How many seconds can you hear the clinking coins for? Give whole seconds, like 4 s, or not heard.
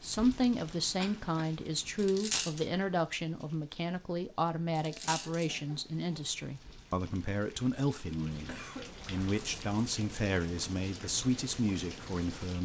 2 s.